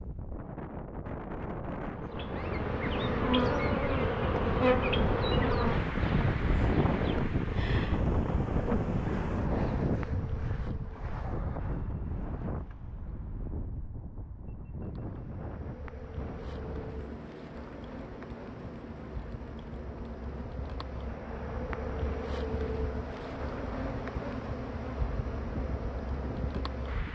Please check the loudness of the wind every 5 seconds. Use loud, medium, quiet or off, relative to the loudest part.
medium, loud, medium, quiet, quiet, quiet.